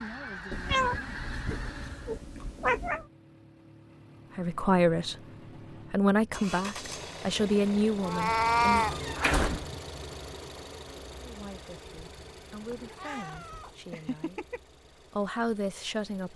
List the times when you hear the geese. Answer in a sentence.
You can hear the geese from 0.0 to 2.2 s.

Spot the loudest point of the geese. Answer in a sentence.
The loudest moment of the geese is at 1 second.